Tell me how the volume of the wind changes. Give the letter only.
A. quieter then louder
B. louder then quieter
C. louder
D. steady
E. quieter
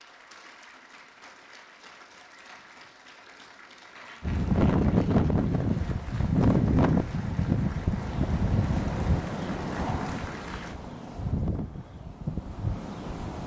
E.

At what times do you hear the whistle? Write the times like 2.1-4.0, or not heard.
not heard.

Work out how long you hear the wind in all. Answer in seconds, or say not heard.
9 s.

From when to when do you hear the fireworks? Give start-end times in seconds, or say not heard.
not heard.